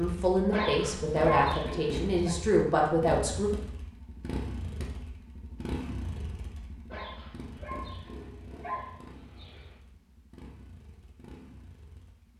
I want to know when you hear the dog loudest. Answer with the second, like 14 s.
1 s.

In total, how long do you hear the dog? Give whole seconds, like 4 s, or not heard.
5 s.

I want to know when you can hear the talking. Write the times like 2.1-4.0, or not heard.
0.0-3.5.